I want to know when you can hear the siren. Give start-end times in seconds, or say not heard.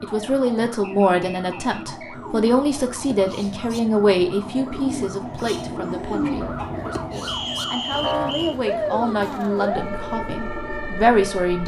0.0-11.6.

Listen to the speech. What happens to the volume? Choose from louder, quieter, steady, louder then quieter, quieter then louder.
quieter then louder.